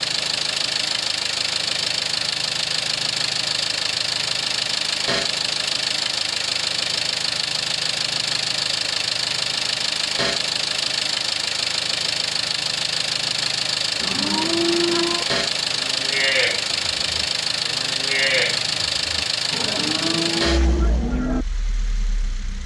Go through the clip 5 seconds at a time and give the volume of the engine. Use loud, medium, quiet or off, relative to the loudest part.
loud, loud, loud, loud, medium.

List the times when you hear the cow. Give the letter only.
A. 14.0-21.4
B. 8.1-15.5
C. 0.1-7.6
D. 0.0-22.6
A.